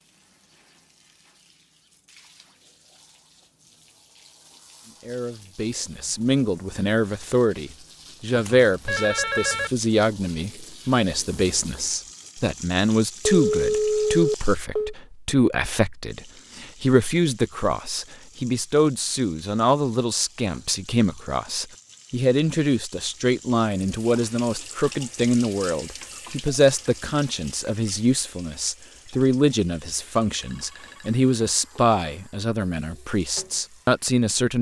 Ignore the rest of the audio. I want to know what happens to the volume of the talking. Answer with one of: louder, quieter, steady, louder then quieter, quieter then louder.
steady.